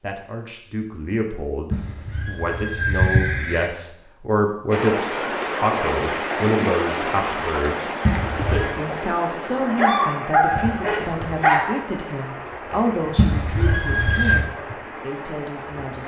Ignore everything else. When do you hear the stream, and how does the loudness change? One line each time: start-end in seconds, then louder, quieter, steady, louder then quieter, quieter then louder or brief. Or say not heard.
4.7-16.0 quieter.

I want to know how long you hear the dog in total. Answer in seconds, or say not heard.
2 s.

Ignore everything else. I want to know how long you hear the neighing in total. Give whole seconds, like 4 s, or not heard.
4 s.